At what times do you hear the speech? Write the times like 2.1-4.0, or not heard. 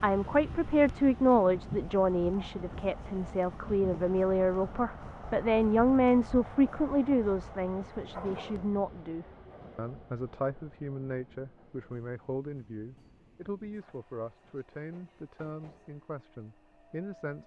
0.0-17.4.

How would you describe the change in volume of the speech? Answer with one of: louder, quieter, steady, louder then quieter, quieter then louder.
quieter.